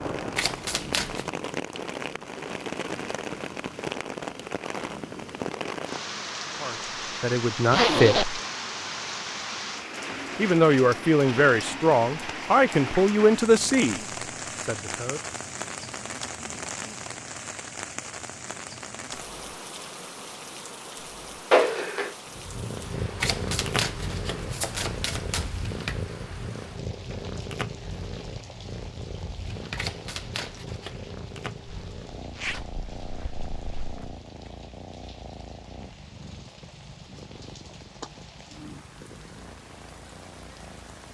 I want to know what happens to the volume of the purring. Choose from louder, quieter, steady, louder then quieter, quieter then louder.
quieter.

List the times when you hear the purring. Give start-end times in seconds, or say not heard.
22.2-41.0.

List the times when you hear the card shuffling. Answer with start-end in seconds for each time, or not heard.
0.3-1.3, 23.2-25.6, 29.8-30.9.